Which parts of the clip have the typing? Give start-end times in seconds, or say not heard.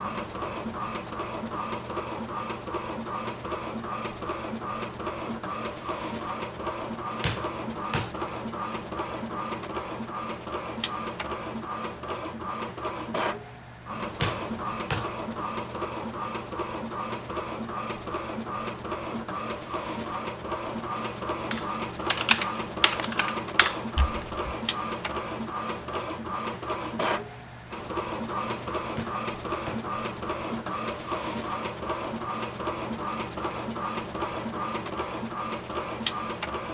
21.5-24.3.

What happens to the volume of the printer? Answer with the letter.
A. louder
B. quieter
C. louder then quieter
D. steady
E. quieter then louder
D.